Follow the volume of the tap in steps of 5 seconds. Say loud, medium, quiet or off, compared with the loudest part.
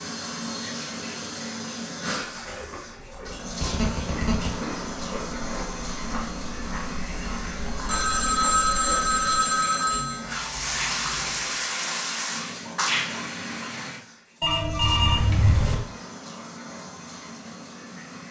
loud, medium, loud, medium.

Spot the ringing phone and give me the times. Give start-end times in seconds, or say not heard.
3.6-4.5, 7.8-10.2, 14.4-15.8.